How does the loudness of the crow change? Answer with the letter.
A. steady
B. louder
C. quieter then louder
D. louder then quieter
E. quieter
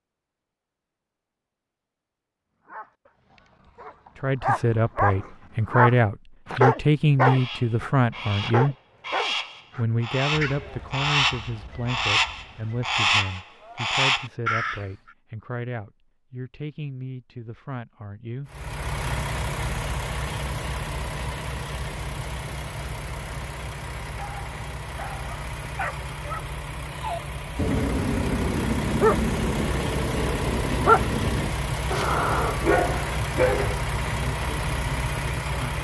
B.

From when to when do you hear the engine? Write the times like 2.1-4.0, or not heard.
18.4-35.7.